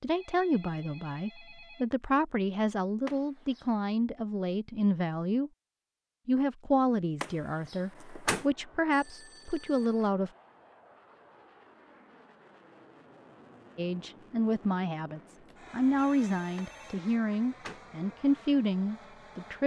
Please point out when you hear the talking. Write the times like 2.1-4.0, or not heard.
0.0-5.5, 6.2-10.3, 13.8-19.6.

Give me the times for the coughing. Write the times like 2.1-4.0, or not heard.
not heard.